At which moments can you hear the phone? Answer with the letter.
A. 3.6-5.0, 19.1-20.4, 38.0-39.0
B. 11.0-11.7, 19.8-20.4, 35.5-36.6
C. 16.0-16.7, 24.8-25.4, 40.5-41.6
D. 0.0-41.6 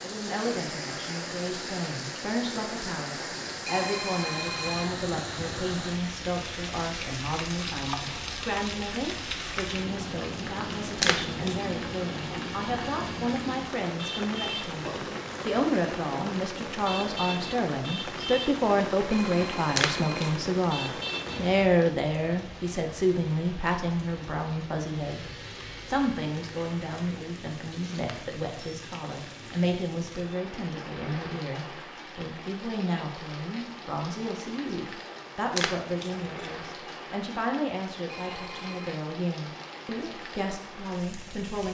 A.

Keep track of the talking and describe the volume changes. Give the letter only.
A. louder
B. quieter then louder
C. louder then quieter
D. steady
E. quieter
C.